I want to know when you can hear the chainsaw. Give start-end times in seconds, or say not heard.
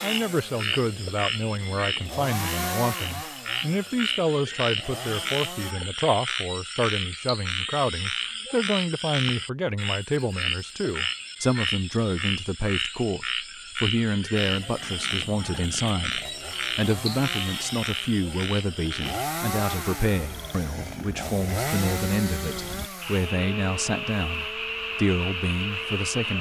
0.0-5.8, 14.4-26.3.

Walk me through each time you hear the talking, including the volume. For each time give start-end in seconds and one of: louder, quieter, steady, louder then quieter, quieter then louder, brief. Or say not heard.
0.0-26.3 steady.